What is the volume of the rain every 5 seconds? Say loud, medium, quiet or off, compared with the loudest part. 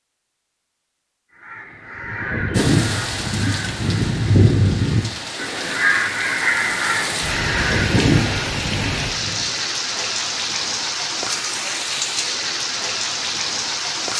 medium, loud, loud.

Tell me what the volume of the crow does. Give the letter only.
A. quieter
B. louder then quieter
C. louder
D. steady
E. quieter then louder
D.